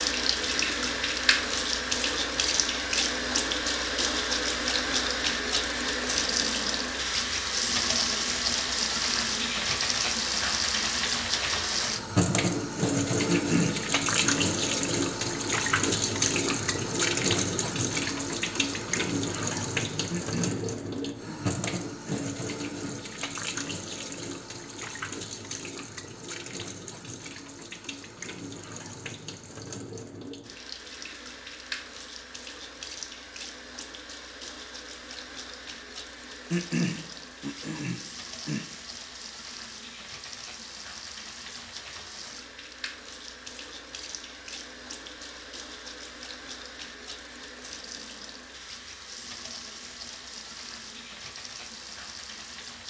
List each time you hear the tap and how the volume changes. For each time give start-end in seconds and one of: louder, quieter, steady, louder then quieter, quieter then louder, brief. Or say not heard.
0.0-52.8 quieter.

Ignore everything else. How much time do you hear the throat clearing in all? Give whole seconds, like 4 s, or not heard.
6 s.